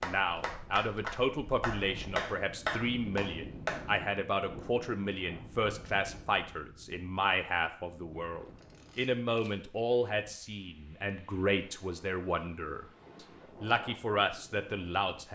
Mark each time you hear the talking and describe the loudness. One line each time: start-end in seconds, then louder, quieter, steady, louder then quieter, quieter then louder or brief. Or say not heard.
0.0-12.8 steady
13.6-15.3 brief.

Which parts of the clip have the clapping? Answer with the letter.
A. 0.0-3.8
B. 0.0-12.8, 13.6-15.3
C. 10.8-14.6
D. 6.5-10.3
A.